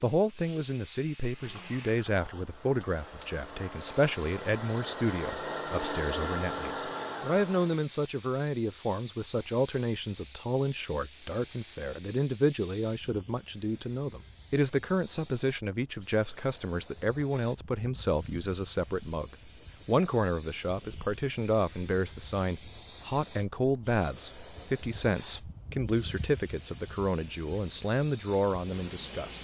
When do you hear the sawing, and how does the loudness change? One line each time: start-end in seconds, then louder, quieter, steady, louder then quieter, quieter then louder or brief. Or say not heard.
not heard.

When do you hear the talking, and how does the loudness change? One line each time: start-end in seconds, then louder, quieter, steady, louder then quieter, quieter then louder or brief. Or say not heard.
0.0-29.3 steady.